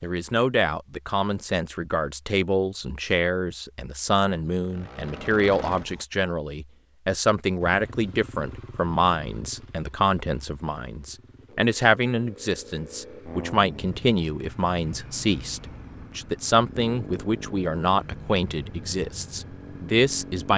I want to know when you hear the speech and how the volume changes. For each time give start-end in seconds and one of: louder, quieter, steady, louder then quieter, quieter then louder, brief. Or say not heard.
0.0-20.5 steady.